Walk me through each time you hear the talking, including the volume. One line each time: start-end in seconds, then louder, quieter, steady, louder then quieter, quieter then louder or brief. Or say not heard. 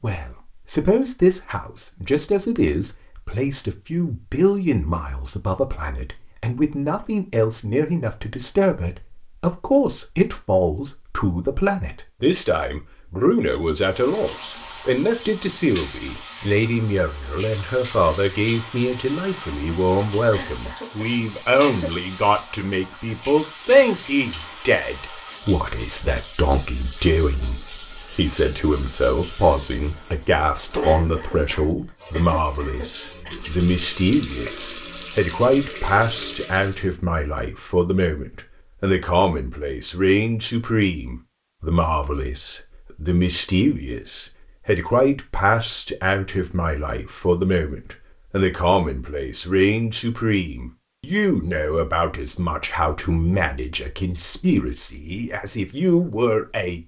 0.0-56.8 steady.